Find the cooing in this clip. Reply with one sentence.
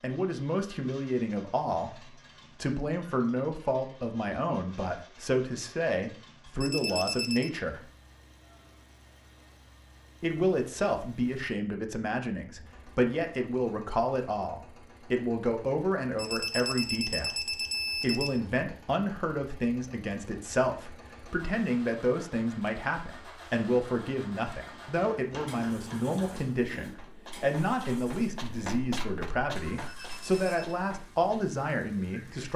The cooing can't be heard in this clip.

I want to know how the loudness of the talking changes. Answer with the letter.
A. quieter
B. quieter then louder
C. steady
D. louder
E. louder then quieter
C.